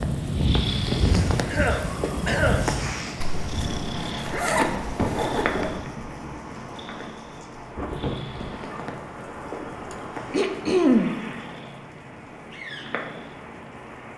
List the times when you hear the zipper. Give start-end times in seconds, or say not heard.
3.2-5.8.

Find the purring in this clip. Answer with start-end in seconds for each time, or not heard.
0.0-14.1.